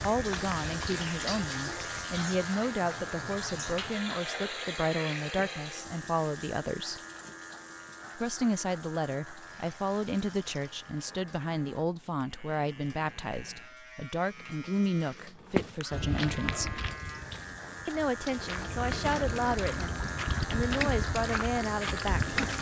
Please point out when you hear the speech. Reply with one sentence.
You can hear the speech from 0.0 to 7.0 s, from 8.2 to 16.8 s and from 17.9 to 22.5 s.